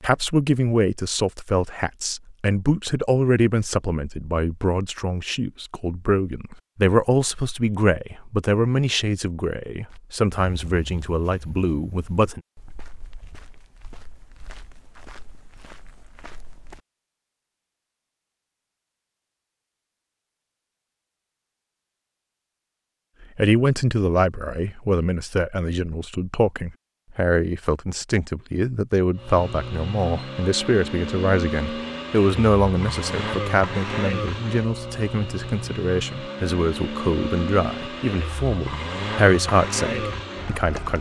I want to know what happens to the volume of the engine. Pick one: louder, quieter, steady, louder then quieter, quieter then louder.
steady.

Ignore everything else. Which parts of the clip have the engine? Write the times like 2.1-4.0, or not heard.
29.1-40.9.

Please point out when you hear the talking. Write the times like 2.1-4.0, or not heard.
0.0-12.4, 23.4-40.9.